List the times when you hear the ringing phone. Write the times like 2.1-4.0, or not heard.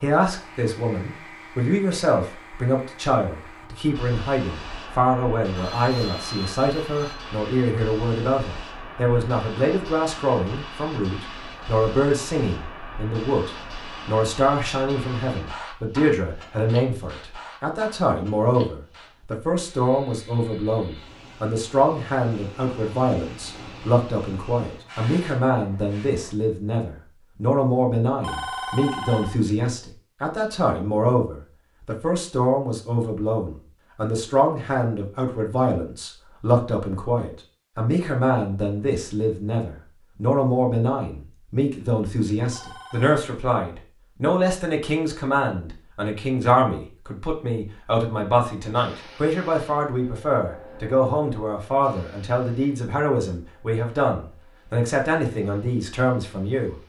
5.5-7.2, 28.2-29.4, 42.5-43.1.